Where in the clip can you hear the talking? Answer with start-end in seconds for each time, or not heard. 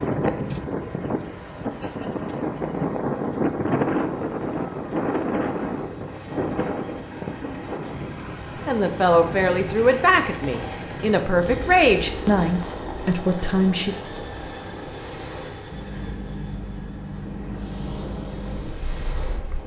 8.7-13.9.